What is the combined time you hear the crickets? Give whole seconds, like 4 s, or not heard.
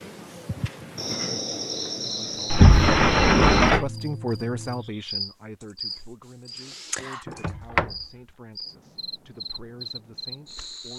11 s.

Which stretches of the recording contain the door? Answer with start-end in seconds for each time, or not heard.
2.5-3.9, 7.2-7.8.